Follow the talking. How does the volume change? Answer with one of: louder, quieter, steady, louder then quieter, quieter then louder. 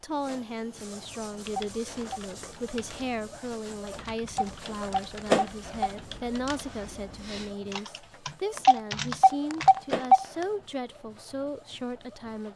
steady.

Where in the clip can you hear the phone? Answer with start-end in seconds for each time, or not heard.
1.4-2.2, 4.2-5.9, 8.6-10.2.